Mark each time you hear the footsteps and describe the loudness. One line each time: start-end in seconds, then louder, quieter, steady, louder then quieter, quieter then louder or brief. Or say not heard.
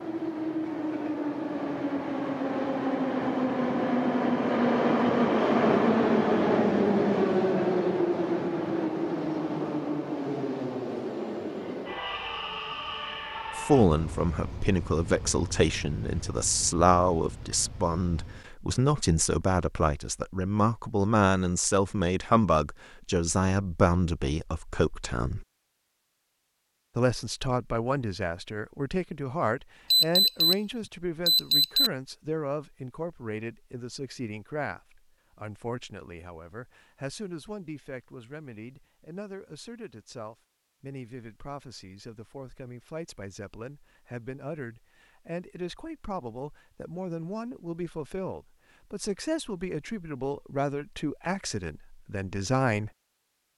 not heard.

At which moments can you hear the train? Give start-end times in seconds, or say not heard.
0.0-18.5.